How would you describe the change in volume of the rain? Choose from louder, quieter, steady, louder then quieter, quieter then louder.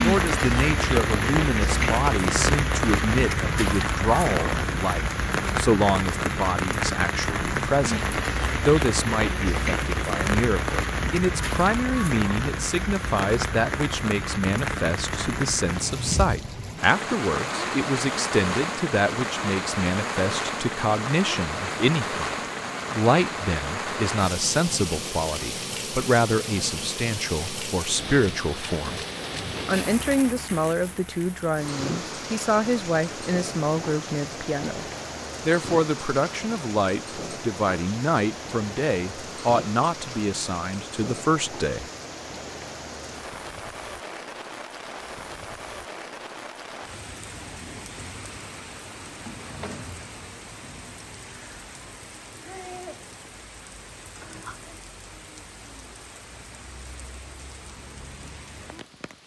quieter.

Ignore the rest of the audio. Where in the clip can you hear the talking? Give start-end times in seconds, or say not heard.
0.0-22.2, 22.9-29.0, 29.6-34.9, 35.5-41.9.